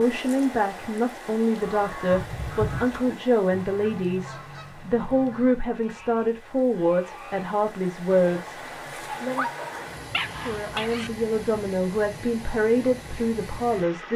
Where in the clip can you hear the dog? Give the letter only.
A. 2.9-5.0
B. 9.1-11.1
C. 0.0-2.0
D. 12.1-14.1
B.